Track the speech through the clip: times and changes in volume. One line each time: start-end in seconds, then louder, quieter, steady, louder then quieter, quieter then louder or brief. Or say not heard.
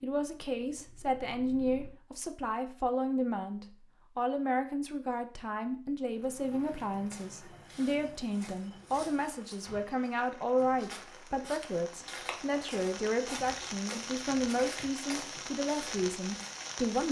0.0-17.0 steady.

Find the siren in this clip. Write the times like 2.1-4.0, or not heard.
not heard.